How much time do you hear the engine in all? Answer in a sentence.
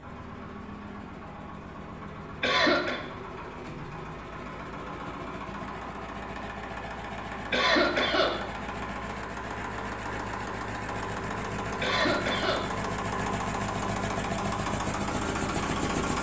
The engine can be heard for 16 seconds in total.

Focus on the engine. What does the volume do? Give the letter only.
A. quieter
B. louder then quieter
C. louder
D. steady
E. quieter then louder
C.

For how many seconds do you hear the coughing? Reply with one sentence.
You can hear the coughing for 2 seconds altogether.